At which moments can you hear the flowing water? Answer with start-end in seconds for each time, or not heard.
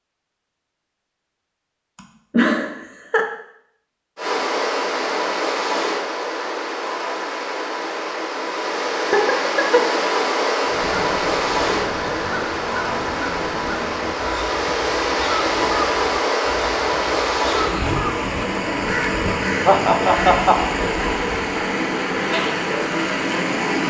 4.2-23.8.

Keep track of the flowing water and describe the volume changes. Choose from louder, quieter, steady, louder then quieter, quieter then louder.
steady.